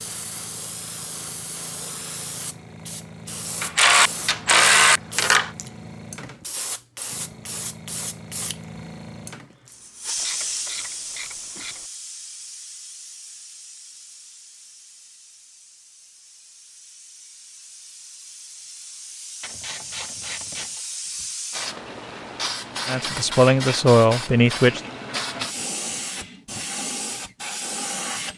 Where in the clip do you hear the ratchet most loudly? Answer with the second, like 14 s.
5 s.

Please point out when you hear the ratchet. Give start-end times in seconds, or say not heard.
3.6-5.5, 10.2-11.8, 19.4-21.2.